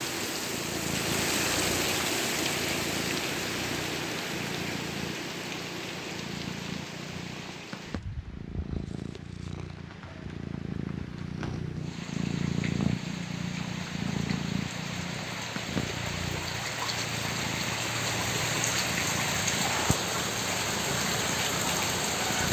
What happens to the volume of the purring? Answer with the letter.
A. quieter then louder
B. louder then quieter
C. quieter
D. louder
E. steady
B.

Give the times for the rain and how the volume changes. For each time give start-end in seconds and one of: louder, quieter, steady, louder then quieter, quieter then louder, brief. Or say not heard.
0.0-22.4 quieter then louder.